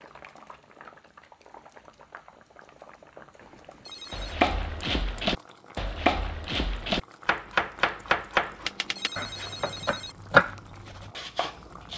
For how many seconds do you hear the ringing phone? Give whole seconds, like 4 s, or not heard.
3 s.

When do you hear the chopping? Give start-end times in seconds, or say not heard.
4.1-11.9.